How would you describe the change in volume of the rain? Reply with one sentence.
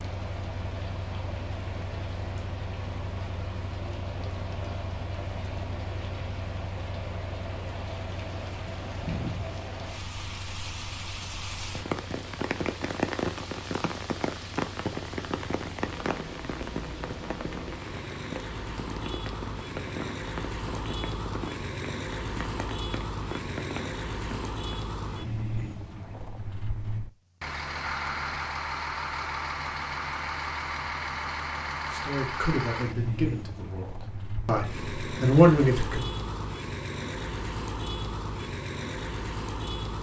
The loudness of the rain goes up, then down.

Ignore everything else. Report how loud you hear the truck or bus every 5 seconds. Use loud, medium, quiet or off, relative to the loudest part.
medium, medium, quiet, medium, loud, loud, loud, loud.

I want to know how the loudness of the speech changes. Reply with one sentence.
The loudness of the speech goes down, then up.